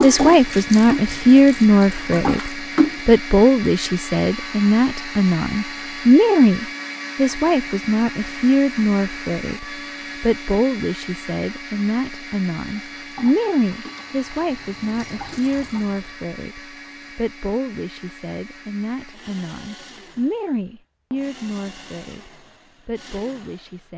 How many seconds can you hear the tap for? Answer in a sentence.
You can hear the tap for 6 seconds altogether.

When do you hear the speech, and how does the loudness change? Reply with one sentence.
The speech can be heard from 0.0 to 23.9 s, getting quieter.